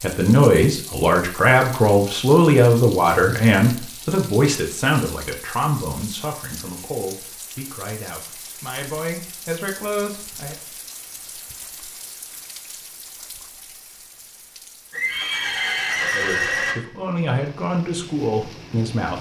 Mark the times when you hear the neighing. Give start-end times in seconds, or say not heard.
14.9-16.8.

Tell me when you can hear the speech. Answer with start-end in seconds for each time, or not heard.
0.0-10.6, 16.1-19.1.